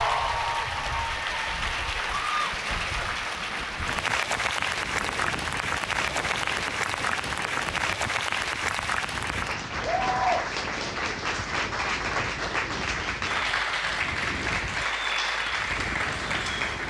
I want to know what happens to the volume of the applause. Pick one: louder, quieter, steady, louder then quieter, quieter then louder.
steady.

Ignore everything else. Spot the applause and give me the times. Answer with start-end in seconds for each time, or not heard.
0.0-16.8.